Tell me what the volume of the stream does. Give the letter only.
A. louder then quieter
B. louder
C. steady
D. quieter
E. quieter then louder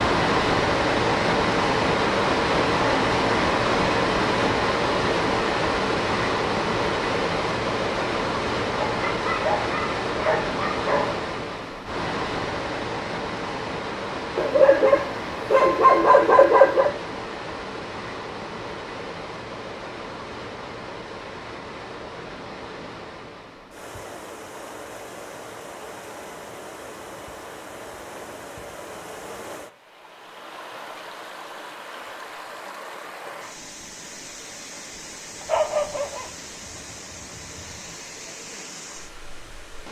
D.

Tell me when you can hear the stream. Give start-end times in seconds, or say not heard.
0.0-39.8.